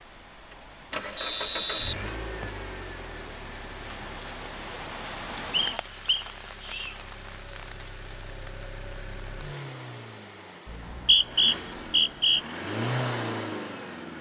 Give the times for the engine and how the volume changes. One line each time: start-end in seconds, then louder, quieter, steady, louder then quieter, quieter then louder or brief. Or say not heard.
0.1-14.1 quieter then louder.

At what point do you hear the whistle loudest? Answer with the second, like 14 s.
11 s.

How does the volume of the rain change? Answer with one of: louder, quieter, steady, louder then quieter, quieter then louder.
louder then quieter.